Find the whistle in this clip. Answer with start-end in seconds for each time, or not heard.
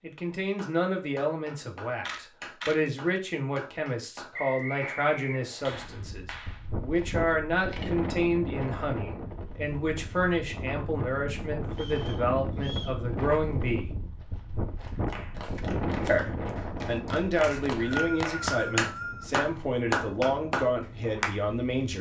4.3-5.8, 11.7-13.0, 17.4-19.3.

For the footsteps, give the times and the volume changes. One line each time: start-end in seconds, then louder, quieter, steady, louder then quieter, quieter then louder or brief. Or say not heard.
not heard.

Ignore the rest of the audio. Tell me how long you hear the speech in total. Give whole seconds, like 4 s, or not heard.
20 s.